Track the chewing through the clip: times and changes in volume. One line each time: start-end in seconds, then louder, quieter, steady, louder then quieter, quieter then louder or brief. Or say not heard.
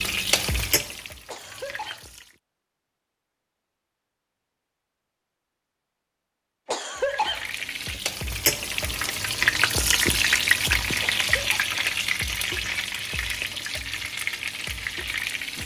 not heard.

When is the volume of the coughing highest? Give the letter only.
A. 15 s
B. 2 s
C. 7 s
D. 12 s
C.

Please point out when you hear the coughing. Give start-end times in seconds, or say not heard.
1.2-2.0, 6.7-8.0, 11.0-11.6.